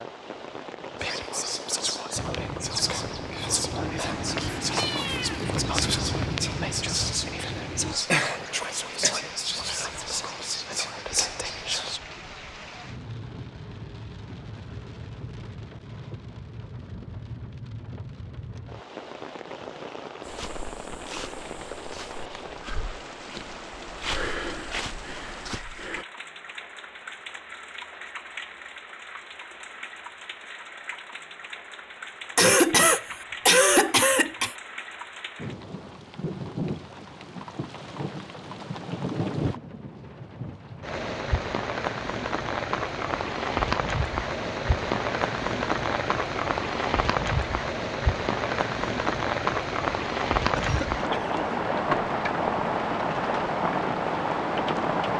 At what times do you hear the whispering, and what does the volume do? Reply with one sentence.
The whispering can be heard from 1.0 to 12.0 s, at a steady volume.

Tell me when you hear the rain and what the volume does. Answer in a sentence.
The rain can be heard from 0.0 to 55.1 s, getting louder.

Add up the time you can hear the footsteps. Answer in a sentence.
The footsteps can be heard for 12 seconds in total.